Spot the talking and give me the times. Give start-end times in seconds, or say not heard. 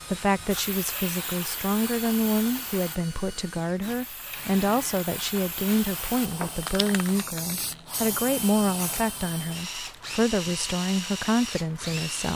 0.1-12.3.